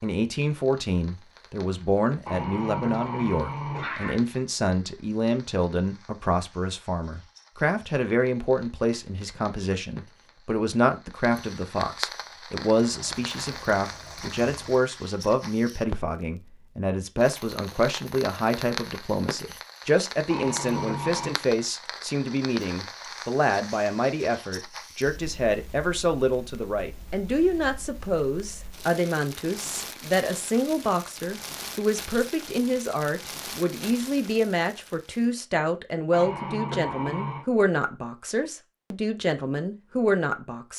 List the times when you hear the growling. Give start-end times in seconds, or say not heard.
2.2-4.2, 20.3-21.4, 36.1-37.5.